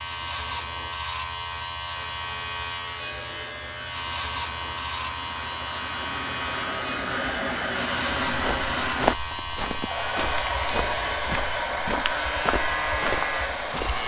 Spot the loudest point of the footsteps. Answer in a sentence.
The volume of the footsteps peaks at 9 seconds.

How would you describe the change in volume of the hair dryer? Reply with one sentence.
The volume of the hair dryer goes up.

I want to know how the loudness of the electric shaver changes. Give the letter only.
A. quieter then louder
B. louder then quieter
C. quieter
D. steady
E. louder
D.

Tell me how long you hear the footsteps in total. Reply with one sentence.
The footsteps can be heard for 6 seconds in total.